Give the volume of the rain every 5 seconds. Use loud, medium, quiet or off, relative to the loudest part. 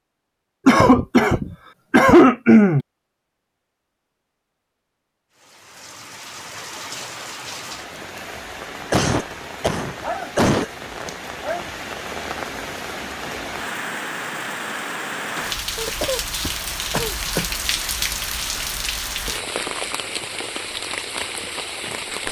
off, medium, loud, loud, loud.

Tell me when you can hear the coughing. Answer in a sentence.
You can hear the coughing from 0.7 to 2.9 s, from 8.9 to 11.1 s and from 15.8 to 17.6 s.